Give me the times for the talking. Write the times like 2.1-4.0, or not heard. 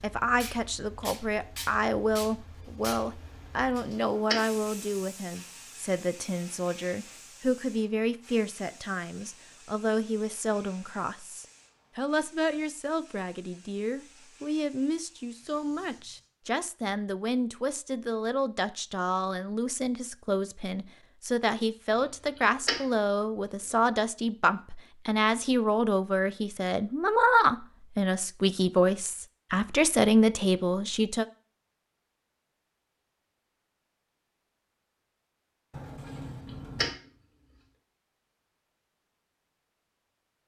0.0-31.2.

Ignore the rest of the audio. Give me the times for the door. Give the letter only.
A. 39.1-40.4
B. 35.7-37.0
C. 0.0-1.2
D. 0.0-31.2
B.